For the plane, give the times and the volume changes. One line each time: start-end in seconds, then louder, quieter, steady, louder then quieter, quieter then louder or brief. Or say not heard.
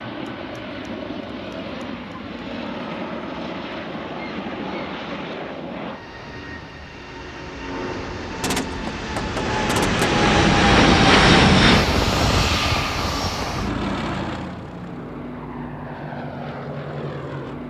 0.0-17.6 louder then quieter.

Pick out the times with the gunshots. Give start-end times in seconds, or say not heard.
8.4-10.2.